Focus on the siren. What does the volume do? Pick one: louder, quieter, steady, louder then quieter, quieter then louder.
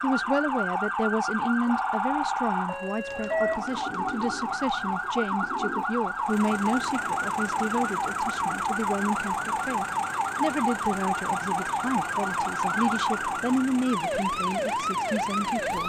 steady.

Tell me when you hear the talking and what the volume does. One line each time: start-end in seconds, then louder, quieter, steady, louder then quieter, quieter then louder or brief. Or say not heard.
0.0-15.8 steady.